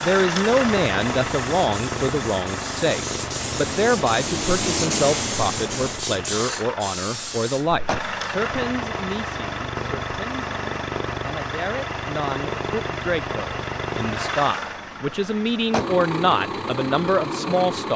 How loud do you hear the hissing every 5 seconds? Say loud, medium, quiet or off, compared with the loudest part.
loud, loud, off, off.